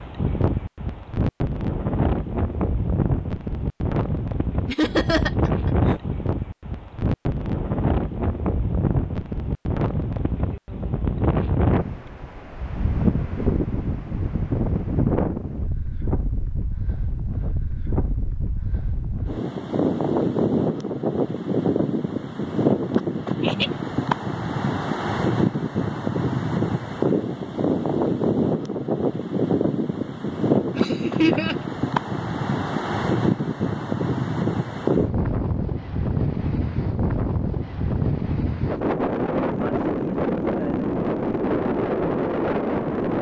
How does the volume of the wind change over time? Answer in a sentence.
The volume of the wind stays about the same.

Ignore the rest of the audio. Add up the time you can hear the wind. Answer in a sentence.
You can hear the wind for 43 seconds altogether.